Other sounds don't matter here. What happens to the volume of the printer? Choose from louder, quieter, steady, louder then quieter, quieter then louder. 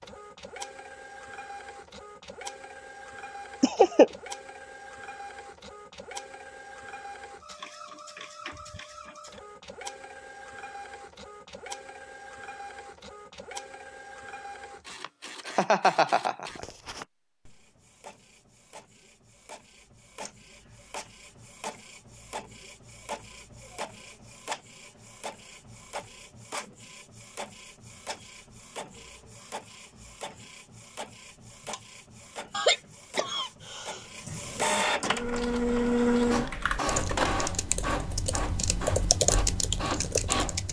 louder.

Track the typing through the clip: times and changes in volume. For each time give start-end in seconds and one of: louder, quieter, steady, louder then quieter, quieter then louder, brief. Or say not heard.
35.1-40.6 louder.